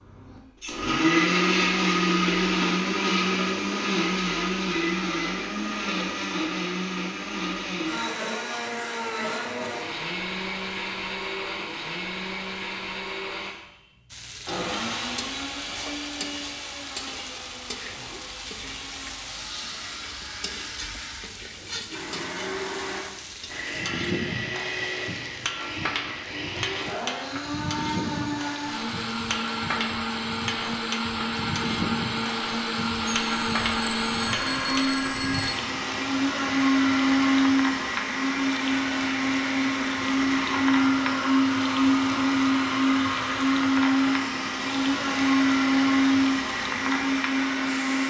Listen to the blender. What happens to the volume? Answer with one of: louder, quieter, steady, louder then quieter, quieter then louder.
quieter then louder.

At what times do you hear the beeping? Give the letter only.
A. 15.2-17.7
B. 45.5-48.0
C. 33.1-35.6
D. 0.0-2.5
C.